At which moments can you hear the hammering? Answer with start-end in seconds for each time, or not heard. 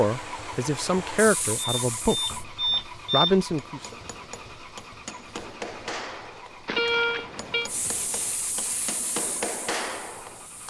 3.5-10.6.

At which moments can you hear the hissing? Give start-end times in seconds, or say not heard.
0.0-2.5, 7.7-10.6.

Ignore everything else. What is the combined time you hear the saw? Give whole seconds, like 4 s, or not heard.
not heard.